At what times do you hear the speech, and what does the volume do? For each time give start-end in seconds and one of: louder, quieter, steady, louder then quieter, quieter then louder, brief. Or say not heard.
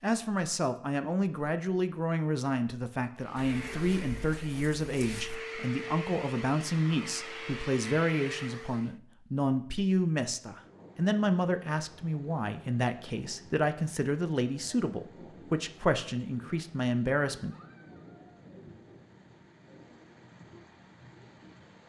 0.0-17.6 steady.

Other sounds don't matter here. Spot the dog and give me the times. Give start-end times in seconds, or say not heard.
not heard.